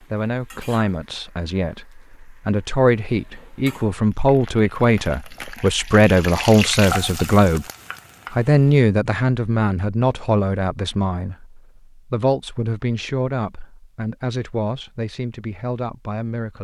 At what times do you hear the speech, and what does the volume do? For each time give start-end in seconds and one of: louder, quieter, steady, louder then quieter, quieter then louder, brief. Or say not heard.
0.0-7.7 louder
8.3-16.5 quieter.